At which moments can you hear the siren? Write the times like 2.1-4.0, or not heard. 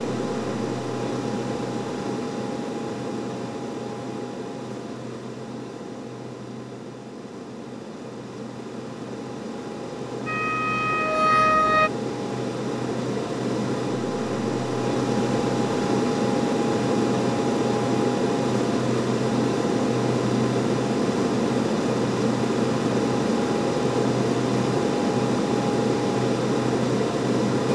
10.2-11.9.